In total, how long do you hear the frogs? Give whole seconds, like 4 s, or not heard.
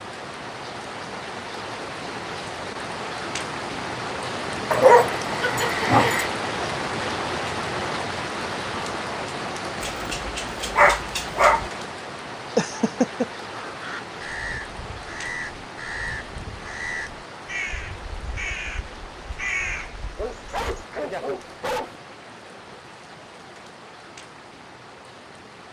not heard.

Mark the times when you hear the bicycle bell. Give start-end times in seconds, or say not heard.
not heard.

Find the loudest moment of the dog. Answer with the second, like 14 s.
5 s.